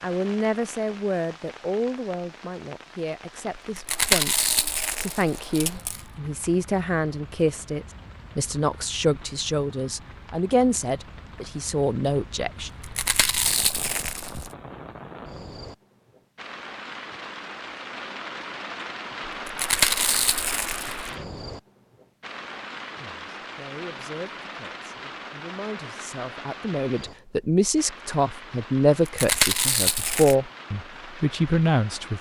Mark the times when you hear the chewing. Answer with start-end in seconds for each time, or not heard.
3.8-6.0, 12.6-14.5, 19.2-21.1, 28.9-30.4.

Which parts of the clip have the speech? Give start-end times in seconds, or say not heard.
0.0-12.7, 22.9-32.1.